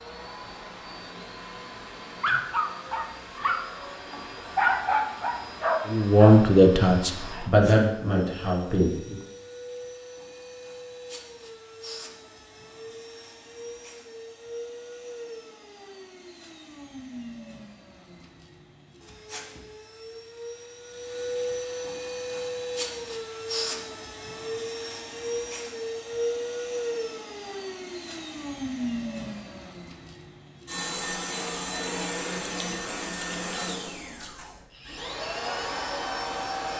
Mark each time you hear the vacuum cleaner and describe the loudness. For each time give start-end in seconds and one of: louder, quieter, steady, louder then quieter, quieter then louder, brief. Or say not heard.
0.0-36.7 louder.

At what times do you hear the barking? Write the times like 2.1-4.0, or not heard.
2.2-7.5.